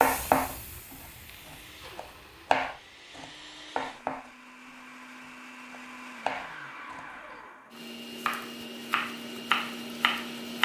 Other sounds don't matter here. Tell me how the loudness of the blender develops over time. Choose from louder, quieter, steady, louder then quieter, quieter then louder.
louder.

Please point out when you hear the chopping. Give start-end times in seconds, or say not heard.
0.0-7.0, 7.8-10.6.